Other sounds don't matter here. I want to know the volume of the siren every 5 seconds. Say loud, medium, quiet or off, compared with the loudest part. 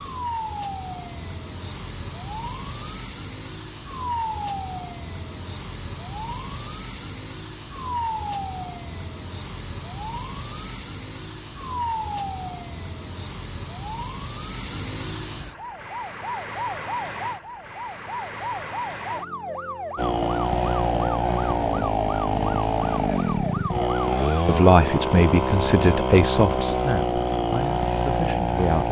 loud, loud, loud, loud, loud, off.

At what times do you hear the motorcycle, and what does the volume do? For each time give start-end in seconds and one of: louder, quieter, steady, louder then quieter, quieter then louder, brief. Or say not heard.
19.9-28.8 steady.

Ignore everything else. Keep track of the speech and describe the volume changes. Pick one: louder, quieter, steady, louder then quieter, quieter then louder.
quieter.